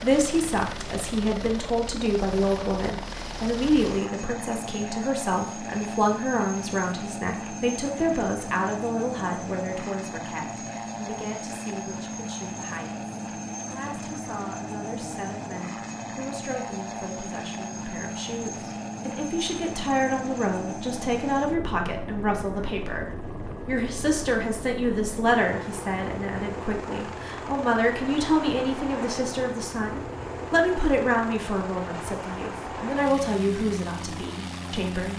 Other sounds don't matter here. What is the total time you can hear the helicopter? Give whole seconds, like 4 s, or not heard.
35 s.